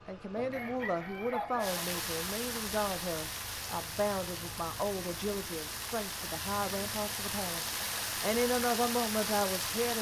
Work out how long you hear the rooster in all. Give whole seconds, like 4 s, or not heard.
2 s.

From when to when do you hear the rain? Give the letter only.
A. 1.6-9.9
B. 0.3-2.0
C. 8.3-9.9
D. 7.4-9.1
A.